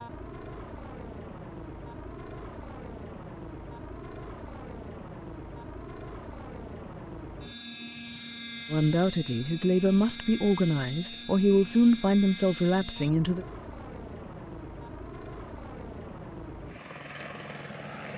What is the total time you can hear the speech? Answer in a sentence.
You can hear the speech for 5 seconds altogether.